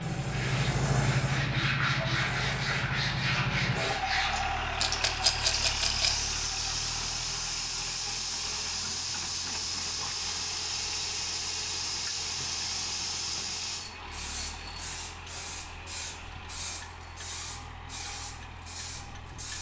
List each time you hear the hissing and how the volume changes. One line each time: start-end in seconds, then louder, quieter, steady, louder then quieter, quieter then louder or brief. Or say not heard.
0.0-19.5 quieter.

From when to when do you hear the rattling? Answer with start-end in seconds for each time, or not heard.
4.8-6.2.